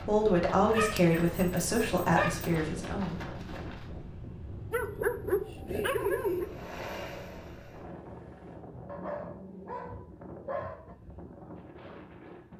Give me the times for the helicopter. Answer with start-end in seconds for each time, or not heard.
6.2-8.6.